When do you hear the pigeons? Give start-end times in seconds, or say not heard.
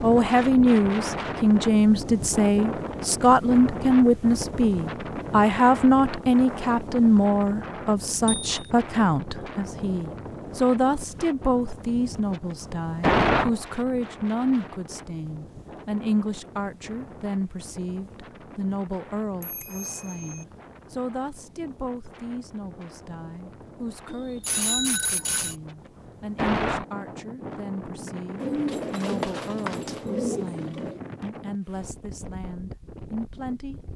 28.4-31.0.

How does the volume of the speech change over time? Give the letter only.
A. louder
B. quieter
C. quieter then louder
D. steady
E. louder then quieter
B.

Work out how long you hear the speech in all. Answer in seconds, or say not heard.
34 s.